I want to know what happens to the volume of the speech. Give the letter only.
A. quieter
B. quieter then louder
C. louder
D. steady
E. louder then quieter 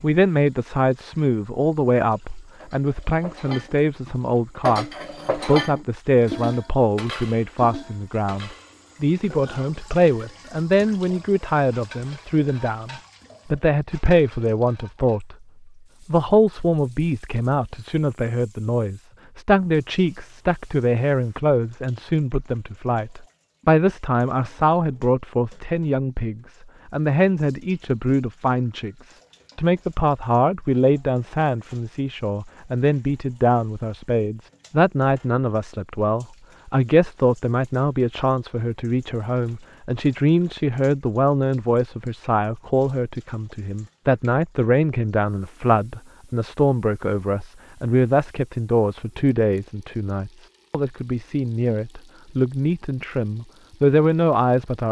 D.